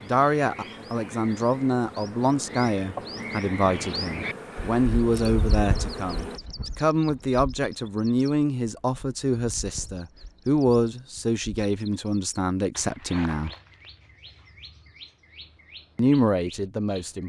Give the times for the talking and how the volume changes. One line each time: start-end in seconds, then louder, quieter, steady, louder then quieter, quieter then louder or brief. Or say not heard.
0.0-13.5 steady
15.9-17.2 brief.